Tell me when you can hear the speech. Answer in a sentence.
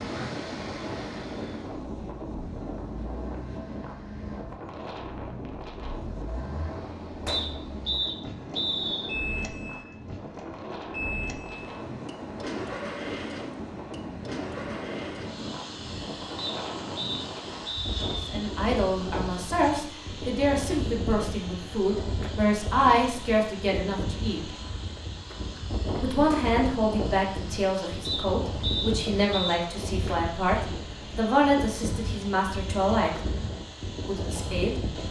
The speech can be heard from 18.2 to 24.6 s, from 25.9 to 33.2 s and from 34.0 to 34.9 s.